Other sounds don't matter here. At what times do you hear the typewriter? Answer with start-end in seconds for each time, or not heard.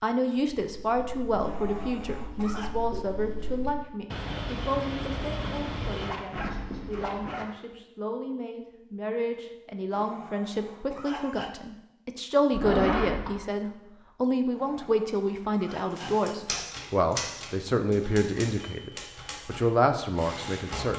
15.9-20.9.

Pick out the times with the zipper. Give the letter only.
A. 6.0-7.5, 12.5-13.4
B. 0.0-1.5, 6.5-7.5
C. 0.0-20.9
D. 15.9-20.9
A.